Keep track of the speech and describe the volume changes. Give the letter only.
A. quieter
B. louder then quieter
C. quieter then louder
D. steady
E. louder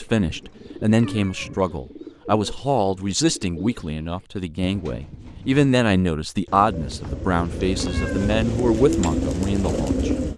D.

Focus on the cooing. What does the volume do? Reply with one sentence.
The volume of the cooing goes up.